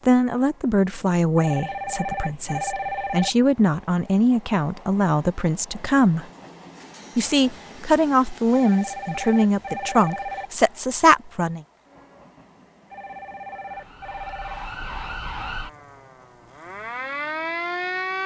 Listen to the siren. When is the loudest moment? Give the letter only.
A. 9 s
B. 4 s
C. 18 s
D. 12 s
C.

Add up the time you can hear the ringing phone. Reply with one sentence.
The ringing phone can be heard for 6 seconds in total.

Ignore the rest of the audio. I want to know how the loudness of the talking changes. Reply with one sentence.
The volume of the talking stays about the same.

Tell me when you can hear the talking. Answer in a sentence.
The talking can be heard from 0.1 to 6.2 s and from 7.2 to 11.6 s.